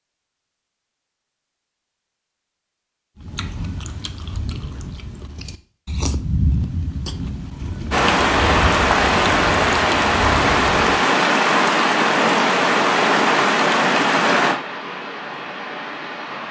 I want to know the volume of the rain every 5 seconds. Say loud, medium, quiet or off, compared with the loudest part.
off, loud, loud, quiet.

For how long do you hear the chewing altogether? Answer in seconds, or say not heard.
8 s.